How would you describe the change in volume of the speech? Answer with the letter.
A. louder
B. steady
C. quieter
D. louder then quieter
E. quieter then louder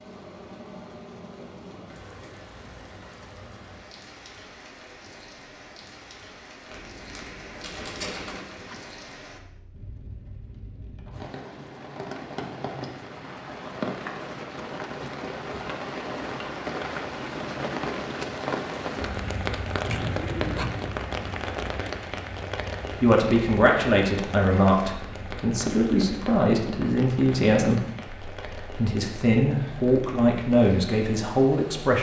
B.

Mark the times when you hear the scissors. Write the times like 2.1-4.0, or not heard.
8.0-8.8, 19.9-20.9.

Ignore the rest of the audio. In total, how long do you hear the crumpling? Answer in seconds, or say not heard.
2 s.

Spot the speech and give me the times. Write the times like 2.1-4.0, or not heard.
22.9-31.9.